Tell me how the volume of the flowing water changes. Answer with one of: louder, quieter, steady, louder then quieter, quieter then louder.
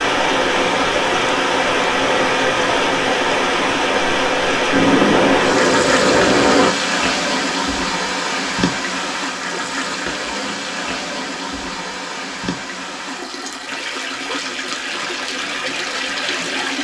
quieter.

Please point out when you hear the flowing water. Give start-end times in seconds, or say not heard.
0.0-16.8.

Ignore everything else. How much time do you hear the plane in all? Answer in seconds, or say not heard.
2 s.